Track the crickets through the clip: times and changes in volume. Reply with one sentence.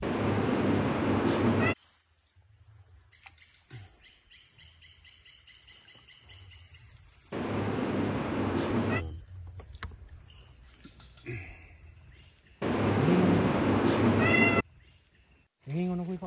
You can hear the crickets from 0.0 to 16.2 s, getting louder.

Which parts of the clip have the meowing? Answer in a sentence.
The meowing can be heard from 0.0 to 1.8 s, from 7.3 to 9.1 s and from 12.6 to 14.7 s.